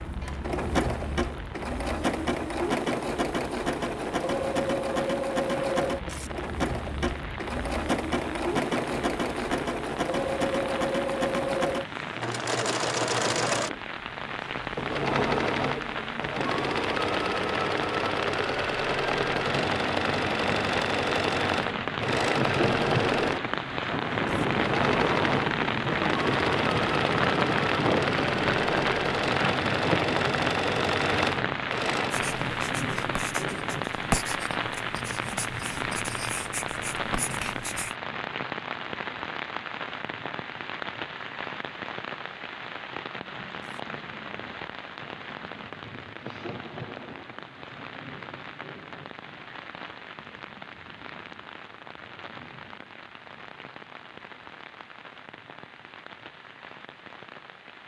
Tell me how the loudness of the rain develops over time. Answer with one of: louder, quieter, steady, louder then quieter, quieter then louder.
louder then quieter.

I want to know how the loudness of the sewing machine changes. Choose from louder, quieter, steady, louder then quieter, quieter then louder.
steady.